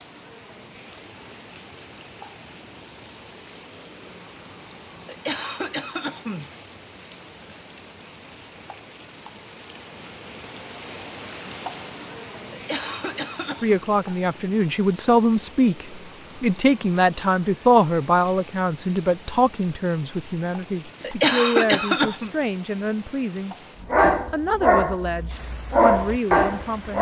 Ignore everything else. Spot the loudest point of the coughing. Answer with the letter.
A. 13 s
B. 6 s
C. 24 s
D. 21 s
D.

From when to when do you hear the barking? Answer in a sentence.
The barking can be heard from 23.8 to 26.9 s.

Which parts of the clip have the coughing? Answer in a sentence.
The coughing can be heard from 5.0 to 6.5 s, from 12.5 to 13.8 s and from 21.0 to 22.3 s.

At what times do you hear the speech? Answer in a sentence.
The speech can be heard from 13.6 to 26.9 s.